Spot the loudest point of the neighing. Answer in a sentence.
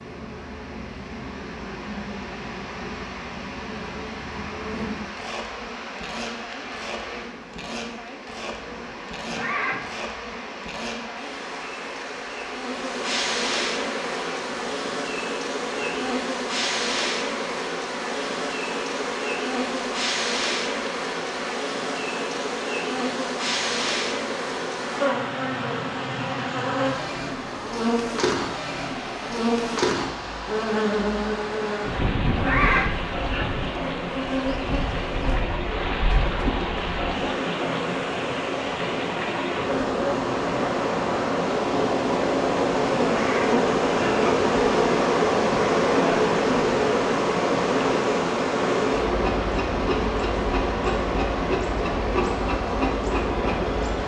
The volume of the neighing peaks at 33 seconds.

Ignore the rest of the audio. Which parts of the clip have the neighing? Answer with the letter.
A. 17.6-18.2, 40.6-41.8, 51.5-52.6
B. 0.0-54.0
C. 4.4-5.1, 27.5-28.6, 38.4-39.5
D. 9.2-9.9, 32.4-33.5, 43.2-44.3
D.